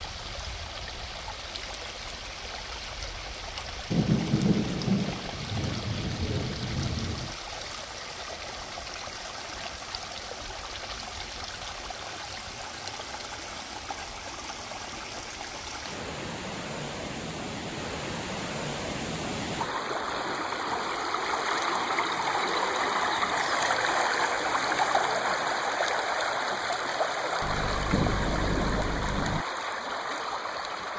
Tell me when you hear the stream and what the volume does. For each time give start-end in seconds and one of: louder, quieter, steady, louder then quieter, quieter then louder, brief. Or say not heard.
0.0-30.9 louder.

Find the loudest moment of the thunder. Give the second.
4 s.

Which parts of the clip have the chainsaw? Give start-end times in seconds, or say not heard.
not heard.